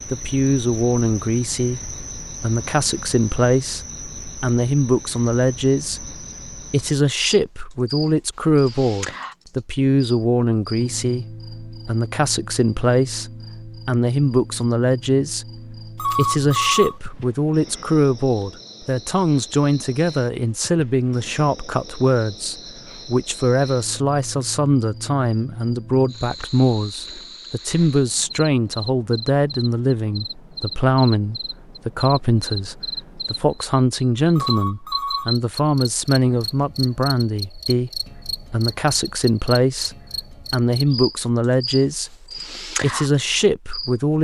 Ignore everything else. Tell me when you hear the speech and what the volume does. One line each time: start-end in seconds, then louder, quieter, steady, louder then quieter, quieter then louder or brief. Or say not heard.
0.1-44.1 steady.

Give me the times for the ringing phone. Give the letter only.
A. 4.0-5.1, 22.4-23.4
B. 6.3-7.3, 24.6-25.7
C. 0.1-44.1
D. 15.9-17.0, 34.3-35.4
D.